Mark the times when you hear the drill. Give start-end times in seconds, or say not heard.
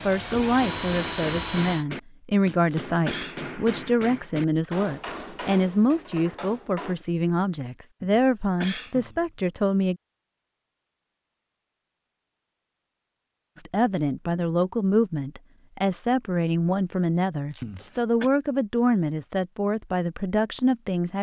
0.0-1.9.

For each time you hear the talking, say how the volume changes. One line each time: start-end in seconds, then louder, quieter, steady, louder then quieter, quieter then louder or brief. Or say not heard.
0.0-9.9 steady
13.6-21.1 steady.